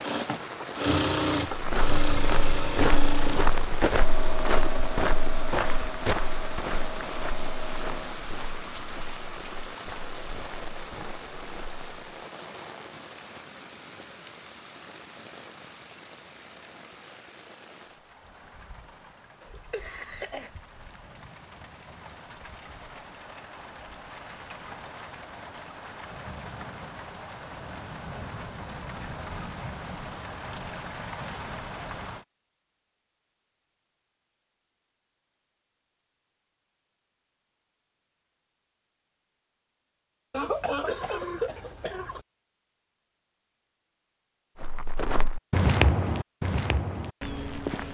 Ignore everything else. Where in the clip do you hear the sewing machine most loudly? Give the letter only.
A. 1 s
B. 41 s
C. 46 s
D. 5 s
A.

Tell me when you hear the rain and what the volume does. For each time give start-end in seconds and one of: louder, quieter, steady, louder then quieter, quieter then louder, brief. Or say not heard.
0.0-32.2 quieter then louder.